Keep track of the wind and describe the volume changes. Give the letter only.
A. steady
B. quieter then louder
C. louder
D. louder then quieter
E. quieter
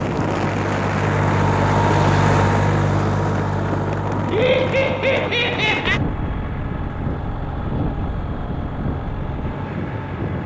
E.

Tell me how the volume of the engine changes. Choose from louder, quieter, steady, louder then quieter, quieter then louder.
quieter.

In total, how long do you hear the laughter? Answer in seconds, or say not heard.
2 s.